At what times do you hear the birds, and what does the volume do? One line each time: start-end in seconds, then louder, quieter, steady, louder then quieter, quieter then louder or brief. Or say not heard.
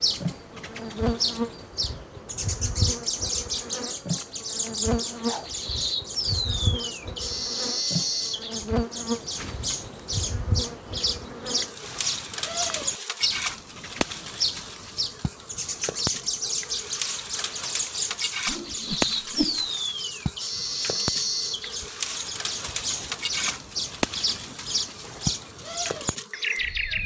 0.0-27.0 steady.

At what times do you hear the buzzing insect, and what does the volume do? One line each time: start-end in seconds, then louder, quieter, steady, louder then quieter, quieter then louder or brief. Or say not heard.
0.1-27.0 steady.